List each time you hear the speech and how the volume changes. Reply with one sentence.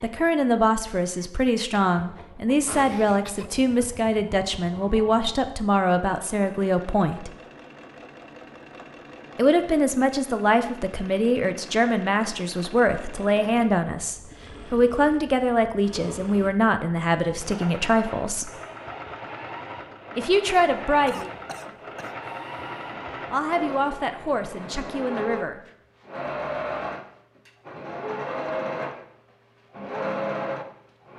The speech can be heard from 0.0 to 7.3 s, at a steady volume; from 9.3 to 18.5 s, at a steady volume; briefly from 20.1 to 21.3 s; and briefly from 23.3 to 25.6 s.